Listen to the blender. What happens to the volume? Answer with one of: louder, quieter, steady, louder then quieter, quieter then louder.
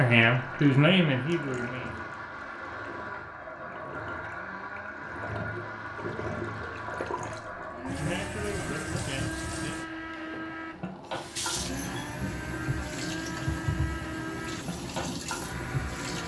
steady.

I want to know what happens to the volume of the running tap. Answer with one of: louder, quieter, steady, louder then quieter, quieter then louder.
louder.